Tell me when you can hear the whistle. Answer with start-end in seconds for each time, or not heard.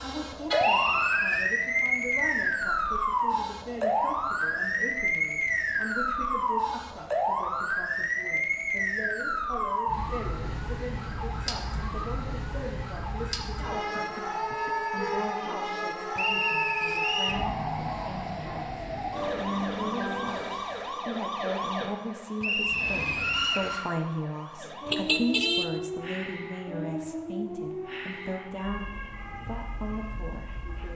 0.6-1.5, 16.1-17.4, 22.4-23.7.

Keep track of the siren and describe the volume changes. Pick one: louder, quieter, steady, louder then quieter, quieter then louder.
quieter.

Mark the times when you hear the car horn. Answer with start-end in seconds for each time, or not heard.
0.5-1.1, 13.9-15.3, 24.9-25.7.